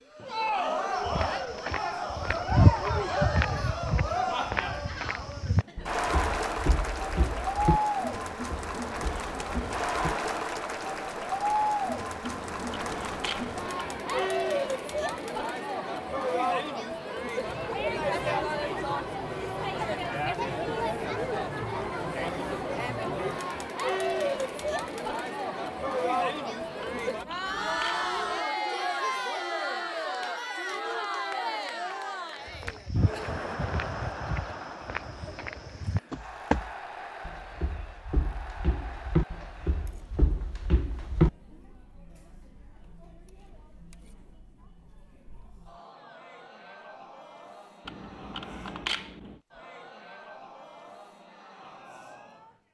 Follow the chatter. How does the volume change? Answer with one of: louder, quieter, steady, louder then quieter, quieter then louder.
quieter.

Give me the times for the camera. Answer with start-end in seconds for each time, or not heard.
12.2-14.3, 26.8-28.4, 47.9-49.4.